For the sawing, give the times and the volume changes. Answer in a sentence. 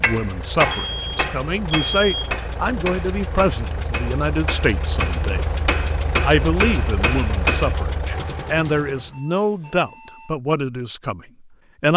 The sawing can't be heard in this clip.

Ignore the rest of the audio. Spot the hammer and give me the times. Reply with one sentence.
You can hear the hammer from 0.0 to 7.8 s.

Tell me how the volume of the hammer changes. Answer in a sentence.
The loudness of the hammer goes down, then up.